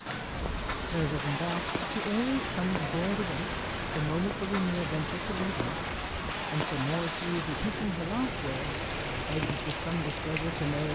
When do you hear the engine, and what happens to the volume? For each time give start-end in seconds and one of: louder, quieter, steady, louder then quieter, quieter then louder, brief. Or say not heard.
0.1-10.9 steady.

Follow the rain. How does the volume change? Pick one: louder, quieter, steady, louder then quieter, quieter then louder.
steady.